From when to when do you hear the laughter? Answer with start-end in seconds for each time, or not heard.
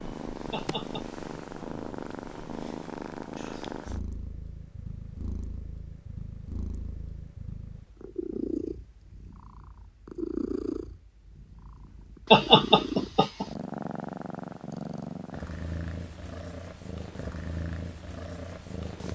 0.5-1.1, 12.3-13.4.